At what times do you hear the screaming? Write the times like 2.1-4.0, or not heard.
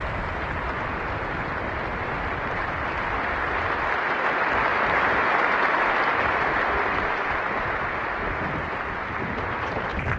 not heard.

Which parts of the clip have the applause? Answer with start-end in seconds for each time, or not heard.
0.0-10.1.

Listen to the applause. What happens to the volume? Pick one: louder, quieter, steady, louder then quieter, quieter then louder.
louder then quieter.